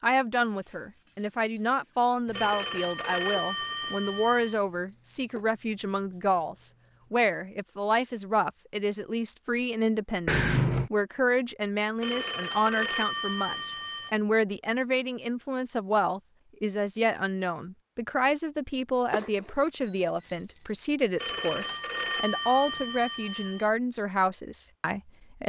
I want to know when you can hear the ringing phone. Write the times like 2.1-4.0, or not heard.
2.3-4.6, 12.0-14.2, 21.1-23.7.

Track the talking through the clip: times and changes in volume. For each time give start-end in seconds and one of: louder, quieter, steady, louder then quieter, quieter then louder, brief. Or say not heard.
0.0-25.4 steady.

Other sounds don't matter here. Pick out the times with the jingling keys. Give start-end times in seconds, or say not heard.
3.3-5.5, 10.2-10.9, 19.1-20.9.